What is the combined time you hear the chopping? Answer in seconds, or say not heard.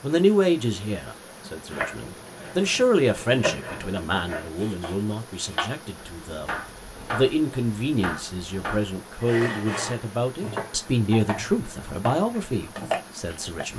12 s.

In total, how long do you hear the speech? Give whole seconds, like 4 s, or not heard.
13 s.